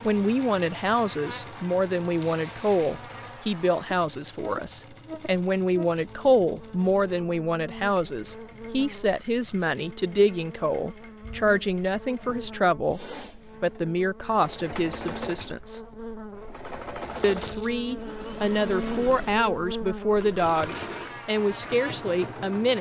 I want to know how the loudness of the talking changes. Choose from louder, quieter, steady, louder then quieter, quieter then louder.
steady.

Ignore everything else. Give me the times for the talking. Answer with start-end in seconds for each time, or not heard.
0.0-15.8, 17.2-22.7.